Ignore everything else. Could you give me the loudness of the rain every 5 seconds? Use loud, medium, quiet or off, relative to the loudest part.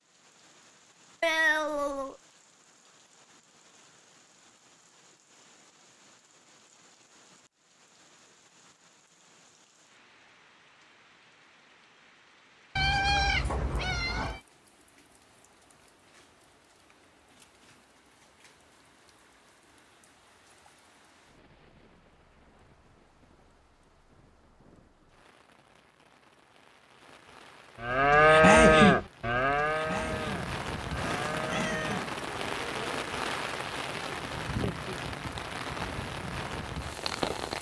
quiet, quiet, quiet, quiet, quiet, quiet, loud, loud.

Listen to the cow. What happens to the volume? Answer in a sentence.
The loudness of the cow goes down.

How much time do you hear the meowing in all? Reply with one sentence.
You can hear the meowing for 4 seconds altogether.